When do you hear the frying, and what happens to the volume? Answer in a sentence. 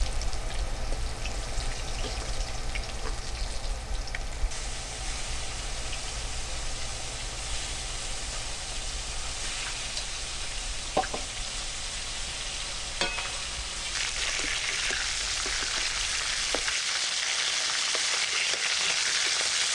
The frying can be heard from 0.0 to 19.7 s, getting louder.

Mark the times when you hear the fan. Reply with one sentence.
The fan can be heard from 0.0 to 16.8 s.